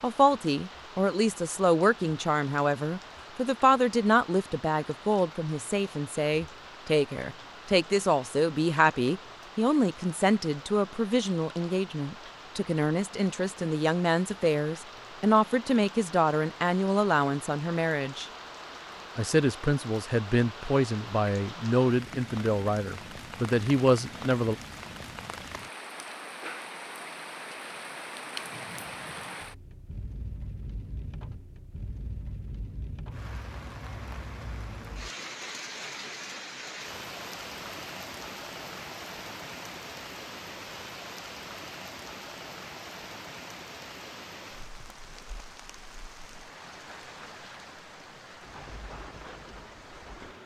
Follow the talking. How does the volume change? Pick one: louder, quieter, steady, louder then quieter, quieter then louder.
steady.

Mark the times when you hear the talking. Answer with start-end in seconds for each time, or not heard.
0.0-18.2, 19.1-24.6.